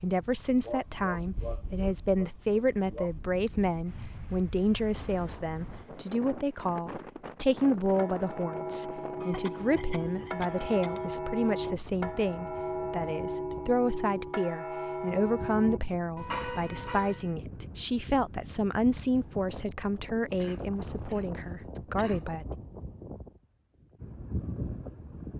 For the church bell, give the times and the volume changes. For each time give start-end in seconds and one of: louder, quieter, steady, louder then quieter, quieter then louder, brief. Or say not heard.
7.8-17.4 steady.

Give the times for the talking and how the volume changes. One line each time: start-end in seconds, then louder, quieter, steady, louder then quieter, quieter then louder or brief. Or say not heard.
0.0-22.4 steady.